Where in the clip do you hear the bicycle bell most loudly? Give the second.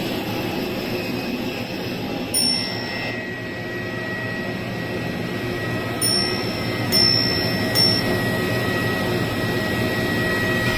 7 s.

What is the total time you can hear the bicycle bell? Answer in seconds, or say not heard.
3 s.